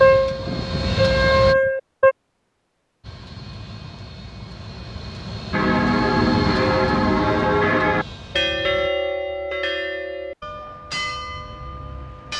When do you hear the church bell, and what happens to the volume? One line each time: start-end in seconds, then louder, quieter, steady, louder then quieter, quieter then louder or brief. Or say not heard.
0.0-2.1 brief
5.5-12.3 quieter.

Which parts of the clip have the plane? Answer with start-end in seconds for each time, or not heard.
0.0-1.6, 3.0-8.9.